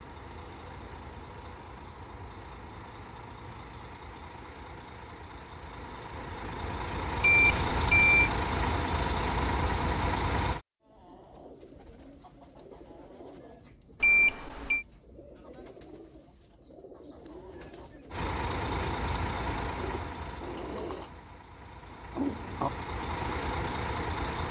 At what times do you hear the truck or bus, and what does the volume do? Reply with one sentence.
You can hear the truck or bus from 0.0 to 10.6 s, getting louder; and from 18.1 to 24.4 s, getting quieter then louder.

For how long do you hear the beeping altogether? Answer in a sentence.
The beeping can be heard for 2 seconds in total.